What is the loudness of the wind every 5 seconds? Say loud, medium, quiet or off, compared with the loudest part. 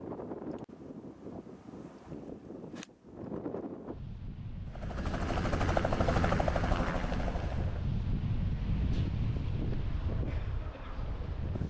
medium, loud, loud.